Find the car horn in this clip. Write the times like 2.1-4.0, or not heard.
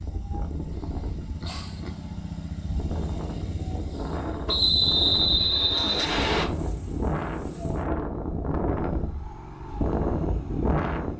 not heard.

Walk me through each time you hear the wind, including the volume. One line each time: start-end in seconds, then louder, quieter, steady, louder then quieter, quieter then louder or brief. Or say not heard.
0.0-11.1 louder.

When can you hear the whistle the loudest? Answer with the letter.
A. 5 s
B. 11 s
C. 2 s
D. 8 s
A.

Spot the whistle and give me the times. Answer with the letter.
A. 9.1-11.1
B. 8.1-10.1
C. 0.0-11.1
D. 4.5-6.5
D.